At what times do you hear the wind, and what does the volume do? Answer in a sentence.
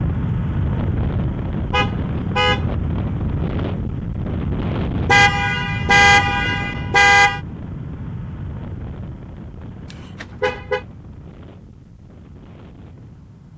The wind can be heard from 0.0 to 13.5 s, getting quieter.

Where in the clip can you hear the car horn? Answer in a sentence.
You can hear the car horn from 1.7 to 2.6 s, from 5.0 to 7.4 s and from 9.9 to 10.8 s.